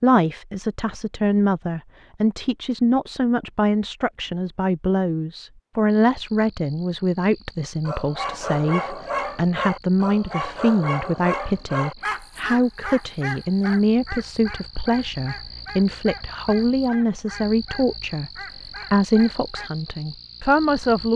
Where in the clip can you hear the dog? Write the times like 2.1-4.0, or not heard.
7.8-19.7.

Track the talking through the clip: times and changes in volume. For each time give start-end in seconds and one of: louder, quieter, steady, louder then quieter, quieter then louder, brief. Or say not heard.
0.0-18.3 steady
18.9-21.1 brief.